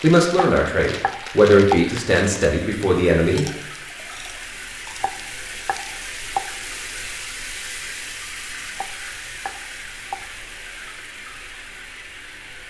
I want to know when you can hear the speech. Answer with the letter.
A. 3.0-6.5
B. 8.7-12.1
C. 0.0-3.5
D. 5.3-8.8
C.